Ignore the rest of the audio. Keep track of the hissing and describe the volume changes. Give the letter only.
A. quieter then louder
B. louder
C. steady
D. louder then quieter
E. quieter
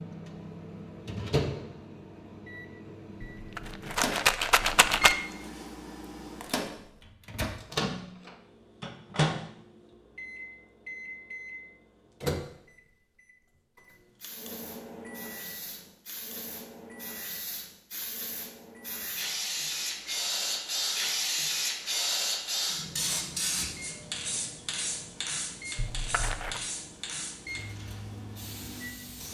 D.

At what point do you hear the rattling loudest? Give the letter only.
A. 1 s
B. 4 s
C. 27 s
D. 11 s
B.